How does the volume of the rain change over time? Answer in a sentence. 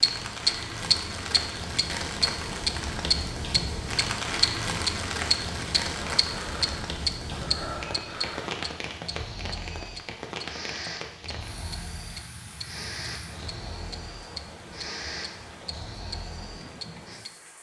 The loudness of the rain goes down.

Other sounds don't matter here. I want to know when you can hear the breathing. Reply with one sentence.
You can hear the breathing from 6.1 to 17.2 s.